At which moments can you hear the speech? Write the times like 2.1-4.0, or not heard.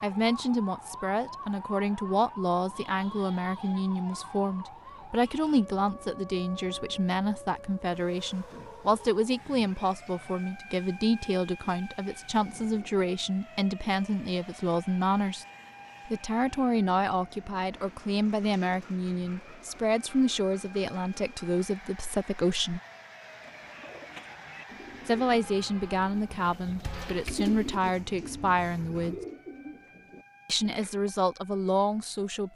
0.0-15.4, 16.1-22.8, 25.1-29.1, 30.4-32.5.